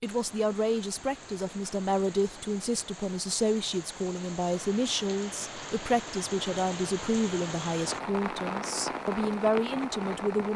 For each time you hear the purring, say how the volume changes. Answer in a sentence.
The purring can't be heard in this clip.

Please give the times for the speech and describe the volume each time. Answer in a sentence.
You can hear the speech from 0.0 to 10.5 s, at a steady volume.